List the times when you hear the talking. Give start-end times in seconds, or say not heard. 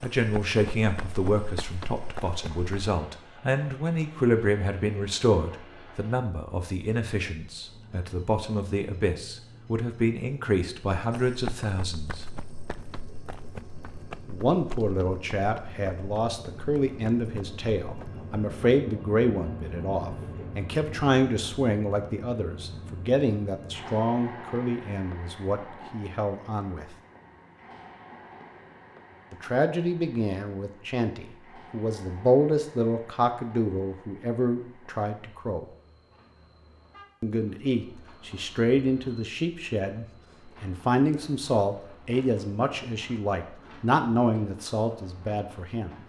0.0-12.2, 14.2-26.9, 29.3-35.6, 37.2-46.0.